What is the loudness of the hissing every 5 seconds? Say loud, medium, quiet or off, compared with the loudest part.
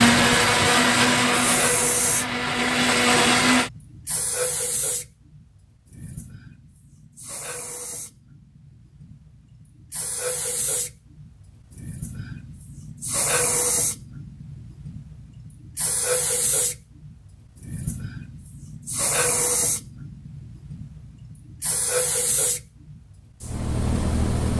loud, quiet, loud, loud, loud.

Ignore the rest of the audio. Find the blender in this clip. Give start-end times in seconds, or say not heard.
0.0-3.7.